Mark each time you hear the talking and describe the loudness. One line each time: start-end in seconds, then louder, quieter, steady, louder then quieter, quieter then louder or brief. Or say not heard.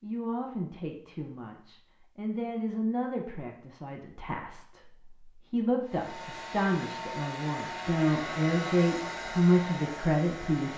0.0-10.7 louder.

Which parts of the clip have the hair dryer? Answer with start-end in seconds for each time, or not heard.
5.8-10.7.